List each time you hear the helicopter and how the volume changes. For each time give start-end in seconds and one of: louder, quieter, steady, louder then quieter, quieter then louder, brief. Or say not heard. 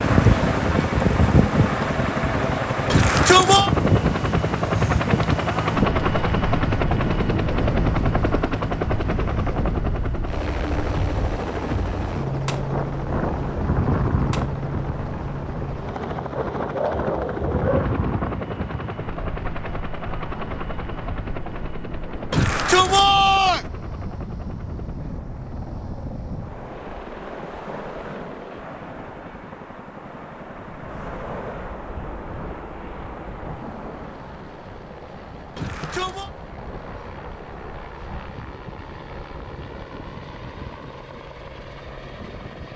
0.0-42.7 quieter.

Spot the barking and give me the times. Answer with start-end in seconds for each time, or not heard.
16.4-17.9.